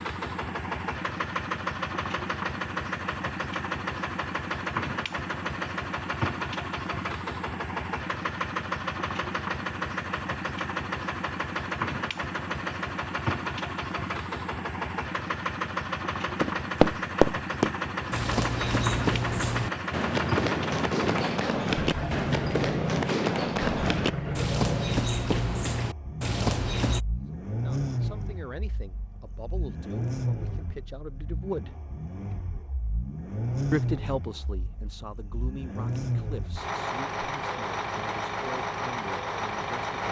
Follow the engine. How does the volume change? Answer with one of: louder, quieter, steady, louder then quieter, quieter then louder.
steady.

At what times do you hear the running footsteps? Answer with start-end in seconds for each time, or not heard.
16.4-27.0.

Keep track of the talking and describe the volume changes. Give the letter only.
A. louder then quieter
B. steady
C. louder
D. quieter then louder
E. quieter
A.